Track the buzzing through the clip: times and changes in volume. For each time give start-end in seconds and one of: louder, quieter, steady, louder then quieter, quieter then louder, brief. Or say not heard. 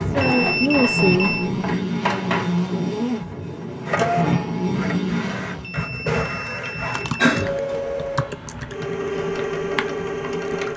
0.0-5.8 steady.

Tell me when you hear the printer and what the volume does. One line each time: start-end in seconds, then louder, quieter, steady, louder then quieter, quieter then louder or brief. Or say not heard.
0.0-10.7 steady.